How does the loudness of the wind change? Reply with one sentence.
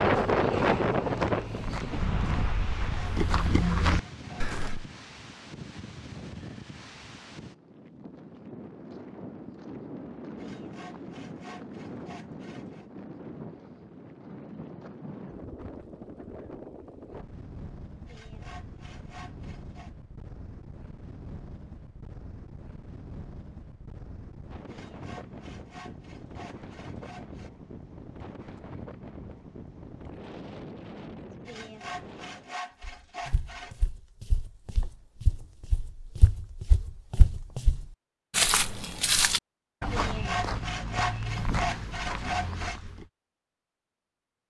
The loudness of the wind goes down.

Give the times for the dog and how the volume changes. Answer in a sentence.
You can't hear the dog here.